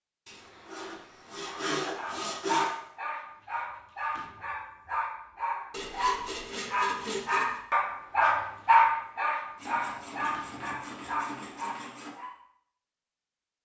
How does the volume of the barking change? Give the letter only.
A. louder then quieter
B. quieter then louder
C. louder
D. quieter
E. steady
A.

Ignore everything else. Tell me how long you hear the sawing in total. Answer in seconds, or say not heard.
7 s.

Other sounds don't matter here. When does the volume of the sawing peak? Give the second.
2 s.